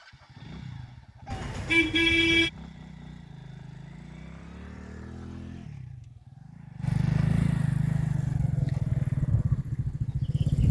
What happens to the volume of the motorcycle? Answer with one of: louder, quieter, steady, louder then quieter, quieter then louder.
louder.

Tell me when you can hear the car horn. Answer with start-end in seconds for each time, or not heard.
1.3-2.5.